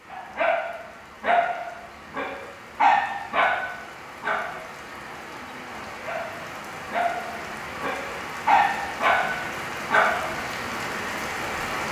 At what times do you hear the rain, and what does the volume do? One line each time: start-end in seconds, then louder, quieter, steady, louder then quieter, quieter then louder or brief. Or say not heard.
0.0-11.8 louder.